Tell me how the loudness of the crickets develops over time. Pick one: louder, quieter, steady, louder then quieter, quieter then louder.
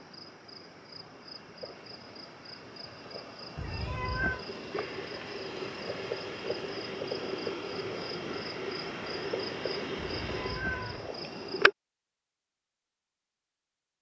louder.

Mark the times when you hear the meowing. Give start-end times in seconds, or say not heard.
3.5-4.5, 9.9-11.1.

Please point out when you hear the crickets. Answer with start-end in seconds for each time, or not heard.
0.0-11.7.